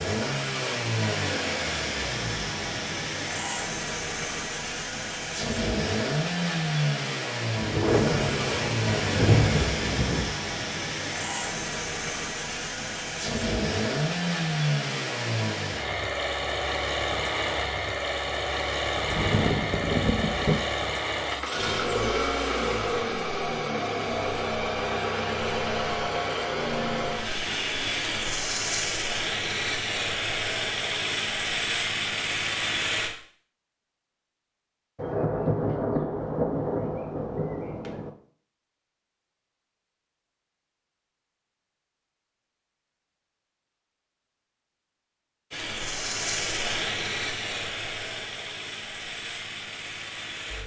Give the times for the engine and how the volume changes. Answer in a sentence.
The engine can be heard from 0.0 to 33.1 s, at a steady volume; and from 45.5 to 50.6 s, getting quieter.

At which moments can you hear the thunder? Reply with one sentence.
The thunder can be heard from 7.5 to 10.3 s, from 19.1 to 20.6 s and from 35.0 to 38.1 s.